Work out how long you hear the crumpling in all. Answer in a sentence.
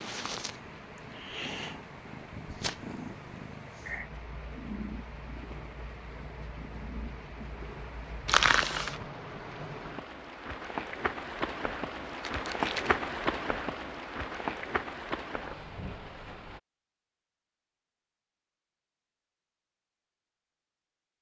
You can hear the crumpling for 2 seconds altogether.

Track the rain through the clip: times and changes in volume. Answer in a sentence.
You can hear the rain from 0.0 to 16.6 s, getting louder.